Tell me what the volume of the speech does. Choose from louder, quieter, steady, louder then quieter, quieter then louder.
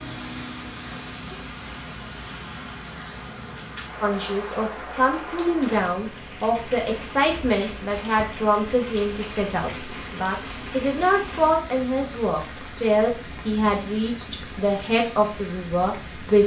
steady.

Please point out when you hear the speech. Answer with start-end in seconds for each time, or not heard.
4.0-16.4.